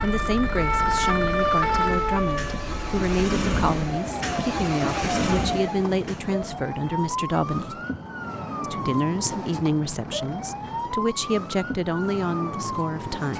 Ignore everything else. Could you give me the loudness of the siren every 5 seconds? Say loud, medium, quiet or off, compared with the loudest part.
loud, medium, medium.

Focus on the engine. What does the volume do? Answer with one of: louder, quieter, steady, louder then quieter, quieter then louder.
louder.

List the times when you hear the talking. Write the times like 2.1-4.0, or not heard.
0.0-7.8, 8.6-13.3.